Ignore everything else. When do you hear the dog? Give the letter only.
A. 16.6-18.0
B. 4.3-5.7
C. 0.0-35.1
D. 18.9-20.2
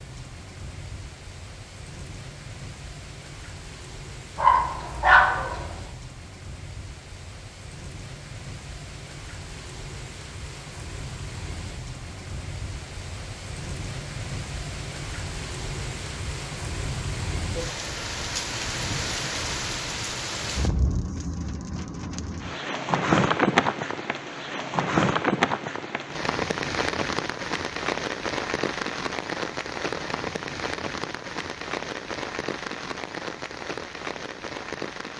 B.